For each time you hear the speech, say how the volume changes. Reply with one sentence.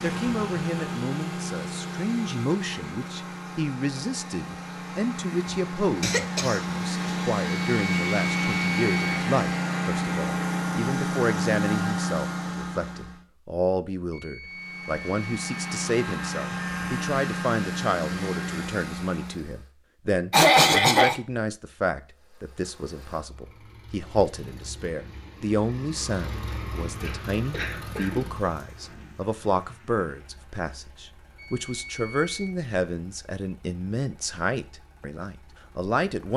You can hear the speech from 0.0 to 36.3 s, at a steady volume.